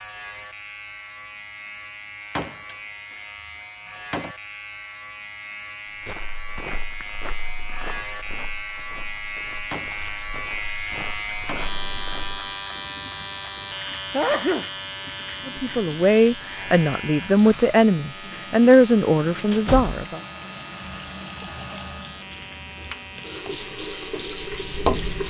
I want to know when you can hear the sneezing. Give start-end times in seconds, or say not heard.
14.1-14.7.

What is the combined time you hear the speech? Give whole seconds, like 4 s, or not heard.
5 s.